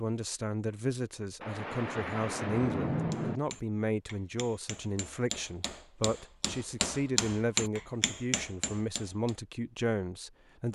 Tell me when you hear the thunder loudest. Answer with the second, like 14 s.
3 s.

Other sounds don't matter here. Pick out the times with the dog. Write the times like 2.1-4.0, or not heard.
not heard.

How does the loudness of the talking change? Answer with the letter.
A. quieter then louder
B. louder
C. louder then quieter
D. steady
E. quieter
D.